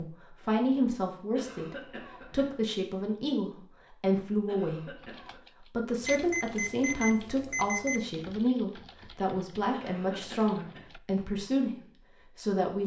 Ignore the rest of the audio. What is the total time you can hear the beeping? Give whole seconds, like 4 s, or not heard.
2 s.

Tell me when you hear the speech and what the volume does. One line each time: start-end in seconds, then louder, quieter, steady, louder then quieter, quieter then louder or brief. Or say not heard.
0.0-12.8 steady.